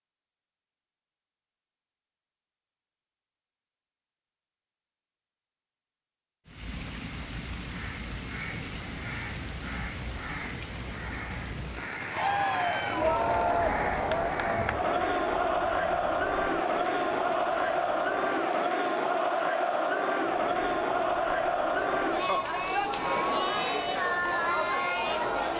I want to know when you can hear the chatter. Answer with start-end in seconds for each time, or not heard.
12.1-25.5.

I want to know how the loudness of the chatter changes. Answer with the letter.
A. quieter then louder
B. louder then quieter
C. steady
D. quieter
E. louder
C.